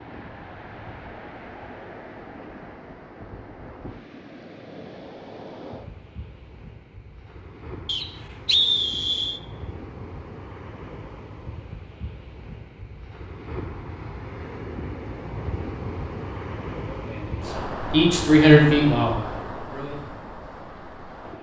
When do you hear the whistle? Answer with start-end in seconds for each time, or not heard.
7.8-9.4.